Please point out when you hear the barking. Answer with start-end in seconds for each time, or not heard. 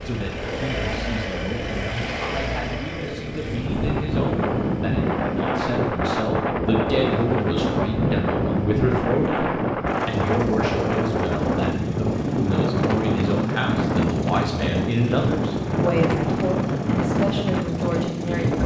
not heard.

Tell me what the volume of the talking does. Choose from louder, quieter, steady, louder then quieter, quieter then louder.
louder.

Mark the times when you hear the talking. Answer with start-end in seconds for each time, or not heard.
0.0-18.6.